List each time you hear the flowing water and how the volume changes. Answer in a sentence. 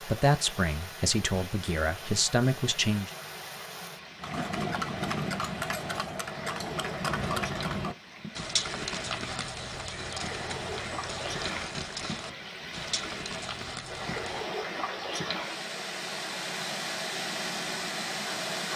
You can hear the flowing water from 0.0 to 18.7 s, getting louder.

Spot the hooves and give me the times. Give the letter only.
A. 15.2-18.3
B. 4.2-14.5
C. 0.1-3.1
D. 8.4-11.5
B.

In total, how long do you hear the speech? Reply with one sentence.
You can hear the speech for 3 seconds altogether.